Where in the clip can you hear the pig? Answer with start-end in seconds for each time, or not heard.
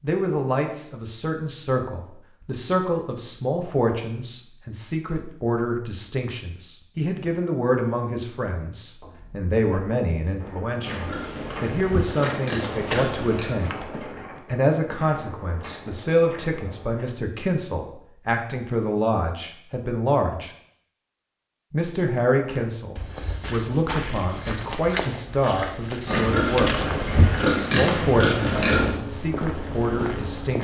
10.8-13.6, 26.1-29.0.